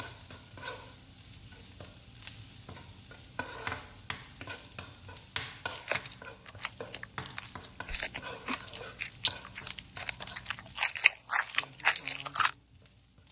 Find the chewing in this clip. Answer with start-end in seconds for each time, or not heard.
5.7-12.5.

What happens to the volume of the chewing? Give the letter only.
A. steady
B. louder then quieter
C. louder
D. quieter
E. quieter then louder
C.